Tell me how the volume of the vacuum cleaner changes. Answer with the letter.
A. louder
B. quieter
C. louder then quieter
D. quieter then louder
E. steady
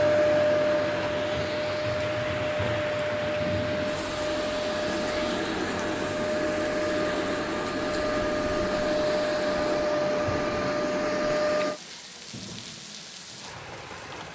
E.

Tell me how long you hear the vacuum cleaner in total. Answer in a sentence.
The vacuum cleaner can be heard for 12 seconds in total.